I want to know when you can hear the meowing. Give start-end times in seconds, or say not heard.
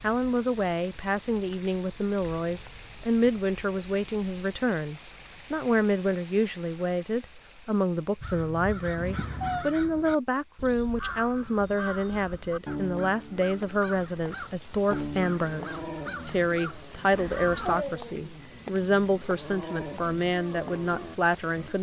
8.9-9.7.